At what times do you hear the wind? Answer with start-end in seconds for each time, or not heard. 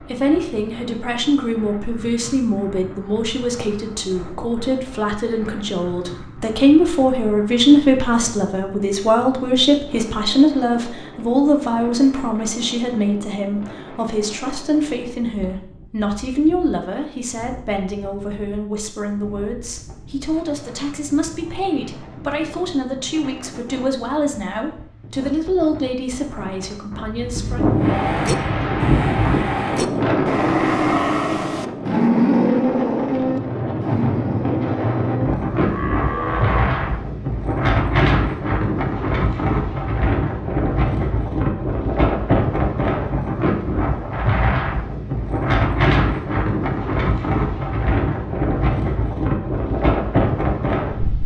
0.0-51.2.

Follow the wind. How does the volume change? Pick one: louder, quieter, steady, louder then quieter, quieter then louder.
louder.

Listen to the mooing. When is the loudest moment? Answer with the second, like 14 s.
32 s.